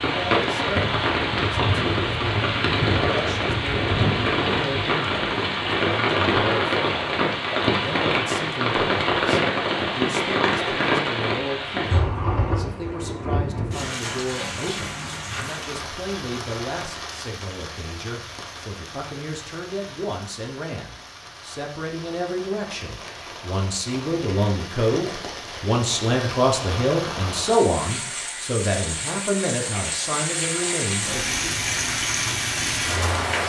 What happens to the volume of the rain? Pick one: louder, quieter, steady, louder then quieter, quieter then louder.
quieter then louder.